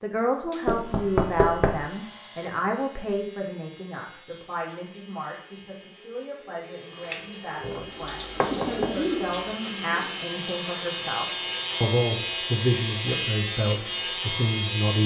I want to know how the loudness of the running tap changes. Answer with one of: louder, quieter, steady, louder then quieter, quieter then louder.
louder then quieter.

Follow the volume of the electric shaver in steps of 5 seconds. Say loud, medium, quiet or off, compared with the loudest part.
quiet, quiet, loud.